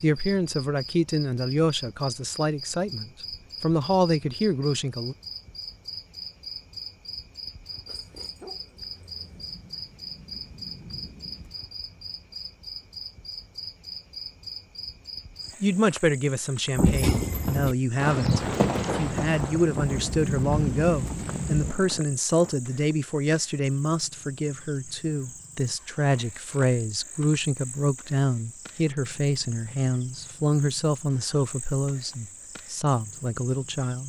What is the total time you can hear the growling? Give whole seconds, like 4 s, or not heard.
2 s.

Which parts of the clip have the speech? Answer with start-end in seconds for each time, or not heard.
0.0-5.2, 15.6-34.0.